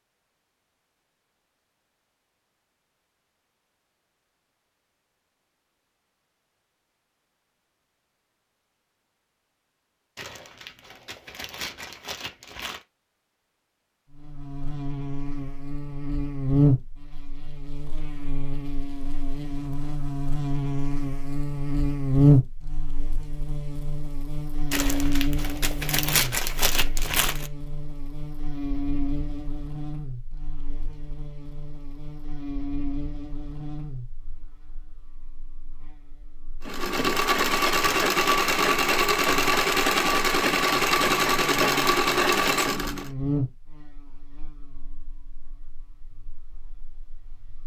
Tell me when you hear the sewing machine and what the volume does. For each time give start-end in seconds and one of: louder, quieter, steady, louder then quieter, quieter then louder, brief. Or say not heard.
36.6-43.1 steady.